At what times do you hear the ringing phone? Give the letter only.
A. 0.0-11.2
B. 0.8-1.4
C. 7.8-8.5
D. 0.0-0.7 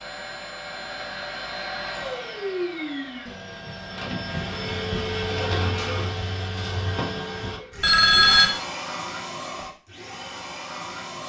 C.